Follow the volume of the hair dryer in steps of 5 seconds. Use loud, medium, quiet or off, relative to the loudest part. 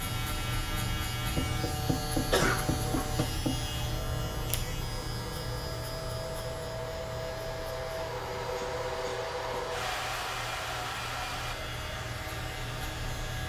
medium, loud, loud.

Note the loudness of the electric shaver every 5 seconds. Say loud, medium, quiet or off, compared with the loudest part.
loud, medium, medium.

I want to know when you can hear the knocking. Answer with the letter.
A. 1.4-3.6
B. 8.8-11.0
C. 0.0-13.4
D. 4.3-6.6
A.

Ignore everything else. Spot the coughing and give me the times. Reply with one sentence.
You can hear the coughing from 2.3 to 3.2 s.